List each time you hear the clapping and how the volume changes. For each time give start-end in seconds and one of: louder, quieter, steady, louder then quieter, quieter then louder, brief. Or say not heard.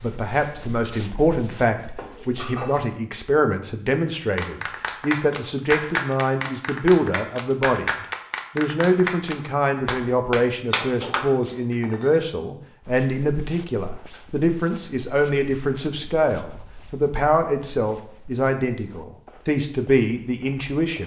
4.3-11.2 steady.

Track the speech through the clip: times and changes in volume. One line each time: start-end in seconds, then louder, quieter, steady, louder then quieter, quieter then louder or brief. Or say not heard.
0.0-21.0 steady.